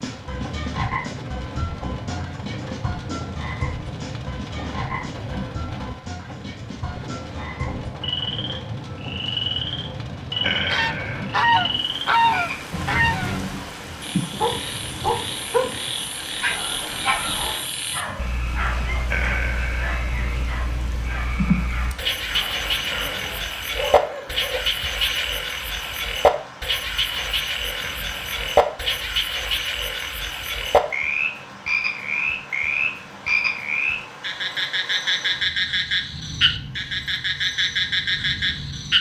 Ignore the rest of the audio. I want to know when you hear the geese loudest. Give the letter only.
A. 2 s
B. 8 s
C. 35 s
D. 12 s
D.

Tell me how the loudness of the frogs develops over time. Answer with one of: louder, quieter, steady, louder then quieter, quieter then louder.
louder.